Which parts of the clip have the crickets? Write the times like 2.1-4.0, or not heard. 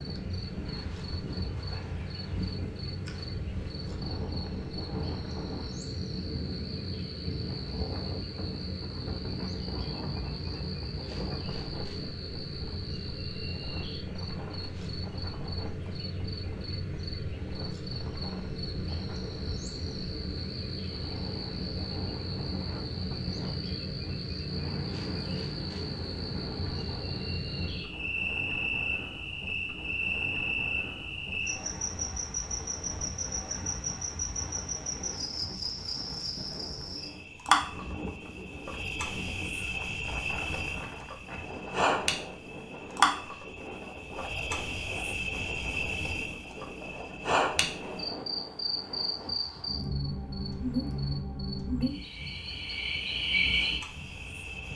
0.0-54.7.